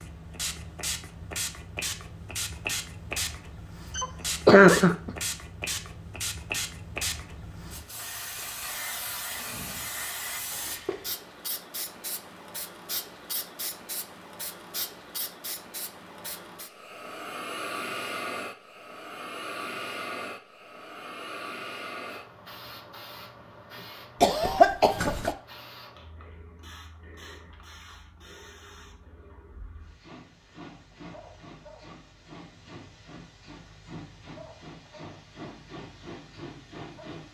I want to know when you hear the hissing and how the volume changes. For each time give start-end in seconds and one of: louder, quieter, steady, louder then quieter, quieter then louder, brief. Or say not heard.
0.0-37.2 quieter.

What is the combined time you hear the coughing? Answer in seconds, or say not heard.
2 s.